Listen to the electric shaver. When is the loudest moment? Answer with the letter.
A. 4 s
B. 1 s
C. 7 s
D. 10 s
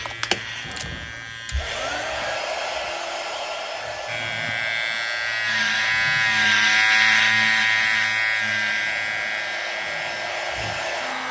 C.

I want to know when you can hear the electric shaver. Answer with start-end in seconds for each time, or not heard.
0.0-2.4, 4.0-11.2.